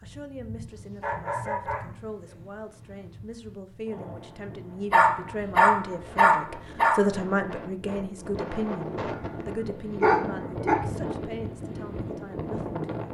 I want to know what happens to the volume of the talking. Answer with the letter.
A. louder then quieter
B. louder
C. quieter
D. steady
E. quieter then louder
A.